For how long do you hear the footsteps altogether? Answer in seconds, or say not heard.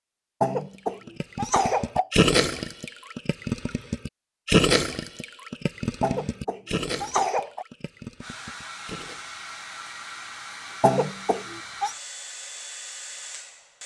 not heard.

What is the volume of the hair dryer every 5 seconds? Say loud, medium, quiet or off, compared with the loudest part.
off, loud, loud.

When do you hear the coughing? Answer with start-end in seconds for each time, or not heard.
0.4-2.1, 6.0-7.7, 10.8-11.9.